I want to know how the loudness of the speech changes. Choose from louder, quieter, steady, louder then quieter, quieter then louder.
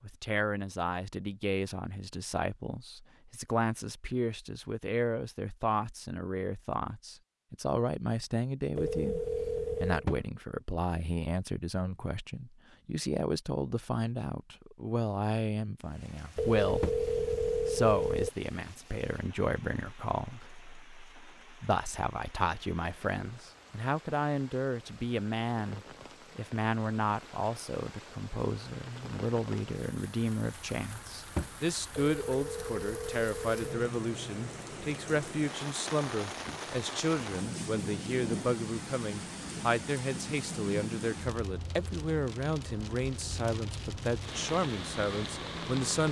steady.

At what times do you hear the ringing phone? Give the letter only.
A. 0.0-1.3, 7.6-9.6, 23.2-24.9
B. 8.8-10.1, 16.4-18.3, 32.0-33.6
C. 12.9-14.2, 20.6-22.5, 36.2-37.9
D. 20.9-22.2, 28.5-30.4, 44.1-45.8
B.